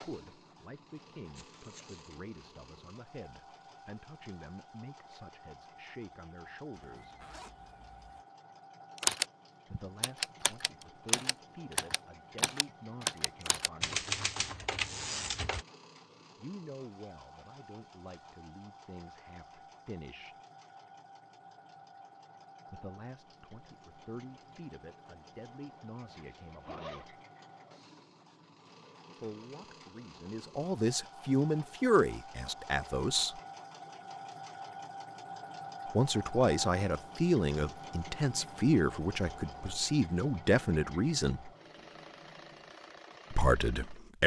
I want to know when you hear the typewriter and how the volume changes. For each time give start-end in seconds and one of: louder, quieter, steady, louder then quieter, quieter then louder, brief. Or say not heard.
8.9-15.7 steady.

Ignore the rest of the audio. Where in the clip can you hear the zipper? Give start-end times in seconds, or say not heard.
6.8-8.2, 26.1-27.1.